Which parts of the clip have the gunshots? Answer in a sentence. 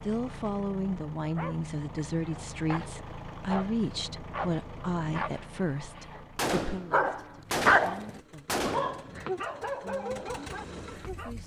The gunshots can be heard from 6.3 to 9.1 s.